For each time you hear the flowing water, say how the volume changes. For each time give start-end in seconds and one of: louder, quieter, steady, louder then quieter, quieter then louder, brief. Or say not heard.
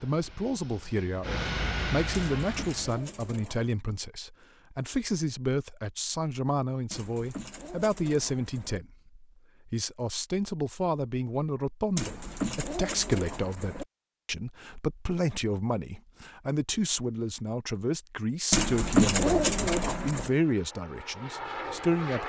not heard.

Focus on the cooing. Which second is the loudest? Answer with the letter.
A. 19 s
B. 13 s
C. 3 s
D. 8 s
A.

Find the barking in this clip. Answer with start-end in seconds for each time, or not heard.
not heard.